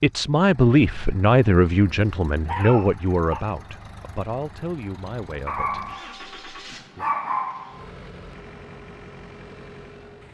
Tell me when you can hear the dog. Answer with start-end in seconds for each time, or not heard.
1.9-3.5, 5.5-6.2, 7.0-7.8.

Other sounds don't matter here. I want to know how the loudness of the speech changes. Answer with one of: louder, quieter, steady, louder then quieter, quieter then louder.
quieter.